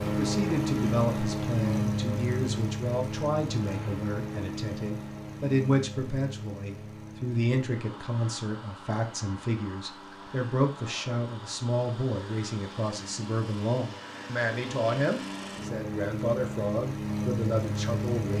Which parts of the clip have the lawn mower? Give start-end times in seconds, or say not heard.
0.0-18.3.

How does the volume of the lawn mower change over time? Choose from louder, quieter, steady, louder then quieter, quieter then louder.
quieter then louder.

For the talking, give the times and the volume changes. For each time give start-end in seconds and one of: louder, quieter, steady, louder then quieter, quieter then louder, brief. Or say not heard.
0.0-18.3 steady.